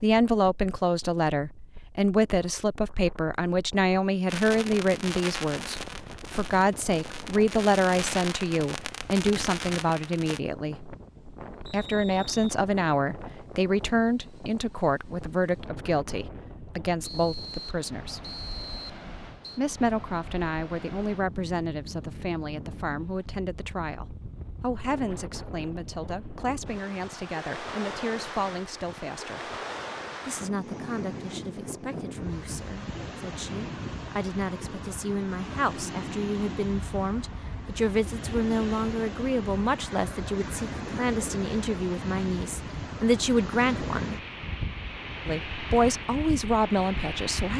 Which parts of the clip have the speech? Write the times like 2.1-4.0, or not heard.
0.0-10.9, 11.7-18.3, 19.6-29.5, 30.2-44.2, 45.2-47.5.